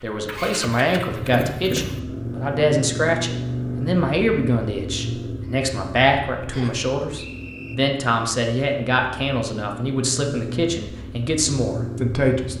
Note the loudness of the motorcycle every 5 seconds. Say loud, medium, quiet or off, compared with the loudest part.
loud, medium, loud.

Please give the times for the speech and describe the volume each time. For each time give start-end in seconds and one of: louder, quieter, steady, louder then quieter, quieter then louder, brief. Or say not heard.
0.0-12.5 steady.